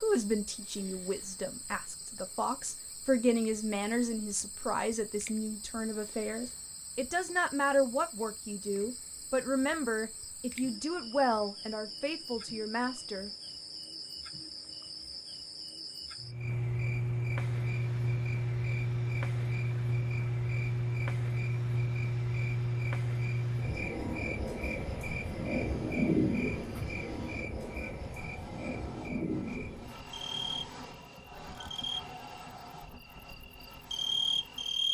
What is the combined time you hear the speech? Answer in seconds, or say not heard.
13 s.